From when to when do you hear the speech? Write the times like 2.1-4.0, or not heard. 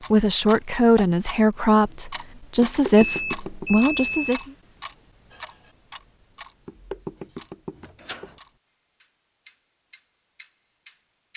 0.1-4.5.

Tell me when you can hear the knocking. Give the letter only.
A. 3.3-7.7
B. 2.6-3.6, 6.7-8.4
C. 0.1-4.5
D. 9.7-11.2
B.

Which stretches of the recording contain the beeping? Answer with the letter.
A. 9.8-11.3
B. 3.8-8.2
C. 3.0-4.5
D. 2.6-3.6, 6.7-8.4
C.